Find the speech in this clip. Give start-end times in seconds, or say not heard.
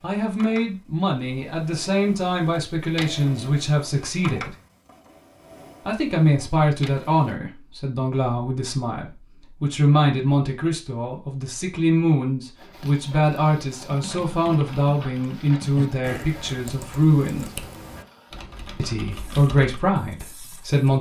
0.0-4.5, 5.8-17.5, 18.8-20.9.